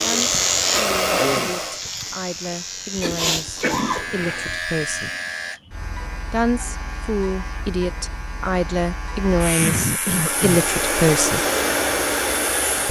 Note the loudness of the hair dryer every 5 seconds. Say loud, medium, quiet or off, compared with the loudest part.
loud, off, loud.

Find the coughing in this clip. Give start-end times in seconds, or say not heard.
3.0-4.6, 9.6-10.7.